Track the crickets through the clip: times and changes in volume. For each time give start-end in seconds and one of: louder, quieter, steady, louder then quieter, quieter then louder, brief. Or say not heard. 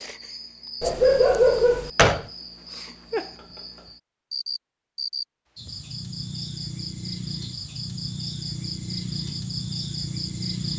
0.0-10.7 louder.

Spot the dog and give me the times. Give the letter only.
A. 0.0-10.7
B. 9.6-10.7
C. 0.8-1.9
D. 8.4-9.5
C.